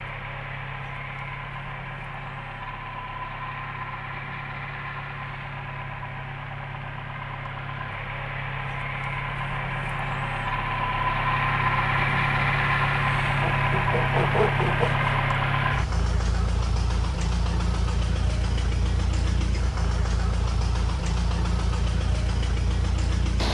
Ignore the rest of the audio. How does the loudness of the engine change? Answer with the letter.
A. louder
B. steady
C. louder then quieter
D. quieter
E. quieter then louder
C.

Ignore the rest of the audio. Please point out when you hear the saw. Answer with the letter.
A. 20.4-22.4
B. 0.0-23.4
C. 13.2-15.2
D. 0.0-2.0
C.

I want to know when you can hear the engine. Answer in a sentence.
You can hear the engine from 0.0 to 23.4 s.